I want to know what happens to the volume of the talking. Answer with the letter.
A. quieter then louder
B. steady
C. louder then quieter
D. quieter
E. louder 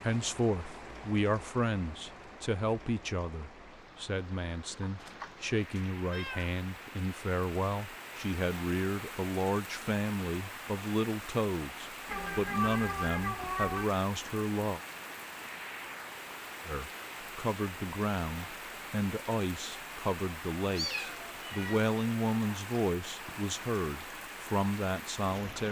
B.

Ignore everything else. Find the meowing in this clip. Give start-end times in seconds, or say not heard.
5.0-6.5, 12.1-13.9, 20.8-21.9.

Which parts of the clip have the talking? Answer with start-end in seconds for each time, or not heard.
0.0-14.8, 16.6-25.6.